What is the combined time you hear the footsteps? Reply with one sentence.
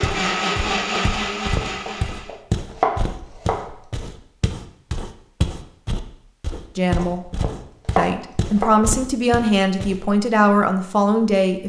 You can hear the footsteps for 10 seconds altogether.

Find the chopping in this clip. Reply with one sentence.
You can hear the chopping from 1.9 to 3.8 s and from 7.0 to 8.9 s.